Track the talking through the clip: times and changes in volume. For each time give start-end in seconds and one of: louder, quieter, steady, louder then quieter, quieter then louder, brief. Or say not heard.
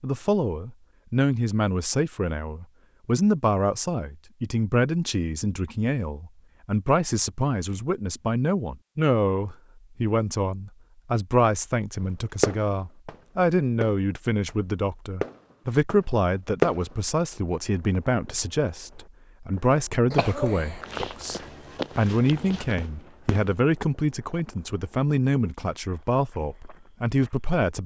0.0-27.8 steady.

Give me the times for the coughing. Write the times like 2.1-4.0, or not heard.
20.1-21.1.